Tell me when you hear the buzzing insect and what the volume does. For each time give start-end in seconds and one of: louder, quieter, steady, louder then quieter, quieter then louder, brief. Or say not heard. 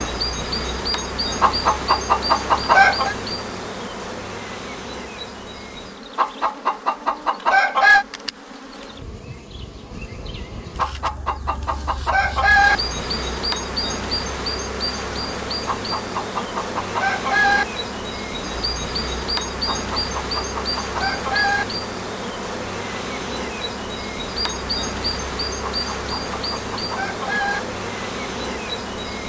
0.0-29.2 quieter then louder.